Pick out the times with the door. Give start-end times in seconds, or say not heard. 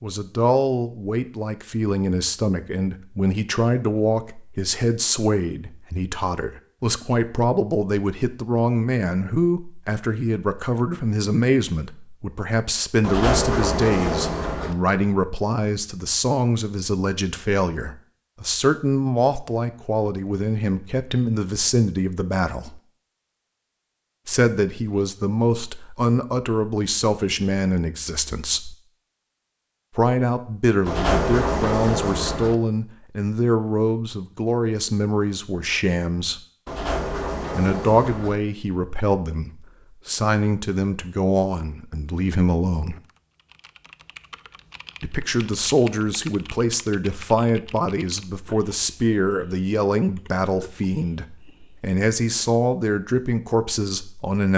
13.0-14.8, 30.9-32.5, 36.6-38.4.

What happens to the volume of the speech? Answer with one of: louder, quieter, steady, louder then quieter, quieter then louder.
steady.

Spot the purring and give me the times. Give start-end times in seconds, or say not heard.
not heard.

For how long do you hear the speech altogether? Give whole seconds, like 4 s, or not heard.
49 s.